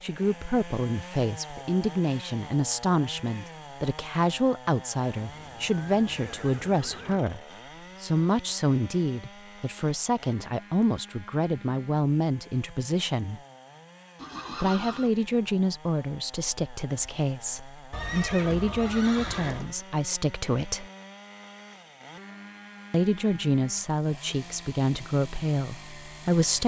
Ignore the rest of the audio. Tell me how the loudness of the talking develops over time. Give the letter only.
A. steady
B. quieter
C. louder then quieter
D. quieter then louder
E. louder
A.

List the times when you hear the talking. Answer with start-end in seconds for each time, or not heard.
0.0-7.4, 8.0-13.4, 14.6-20.9, 22.9-26.6.